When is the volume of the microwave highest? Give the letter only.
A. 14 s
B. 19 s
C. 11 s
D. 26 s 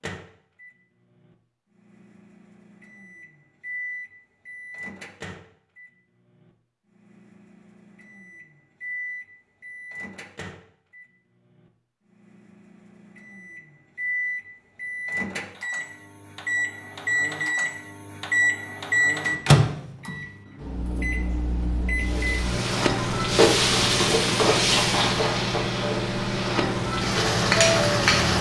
B.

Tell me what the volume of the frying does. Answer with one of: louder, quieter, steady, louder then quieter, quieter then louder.
quieter then louder.